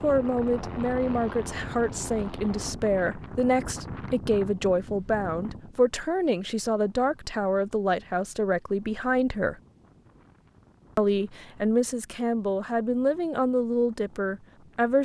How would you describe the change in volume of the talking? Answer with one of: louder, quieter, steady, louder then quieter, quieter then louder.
steady.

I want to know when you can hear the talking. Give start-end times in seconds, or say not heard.
0.0-9.6, 10.9-15.0.